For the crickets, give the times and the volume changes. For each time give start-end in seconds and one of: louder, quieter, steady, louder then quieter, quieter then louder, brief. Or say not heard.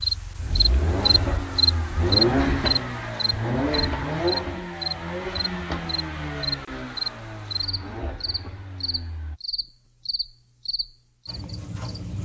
0.0-12.2 quieter.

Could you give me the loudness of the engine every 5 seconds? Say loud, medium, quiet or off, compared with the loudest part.
loud, medium, off.